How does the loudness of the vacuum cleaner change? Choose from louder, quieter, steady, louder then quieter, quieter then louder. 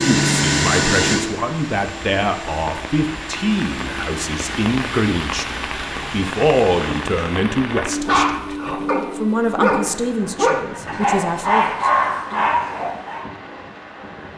quieter.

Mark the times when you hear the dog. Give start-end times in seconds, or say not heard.
7.6-13.2.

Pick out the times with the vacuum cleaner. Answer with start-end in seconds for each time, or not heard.
0.0-7.0.